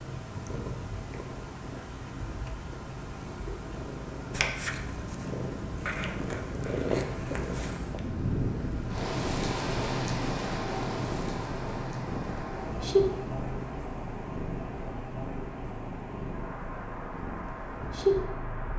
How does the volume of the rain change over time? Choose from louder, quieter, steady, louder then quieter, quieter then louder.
louder then quieter.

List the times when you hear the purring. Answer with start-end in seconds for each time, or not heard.
0.0-18.7.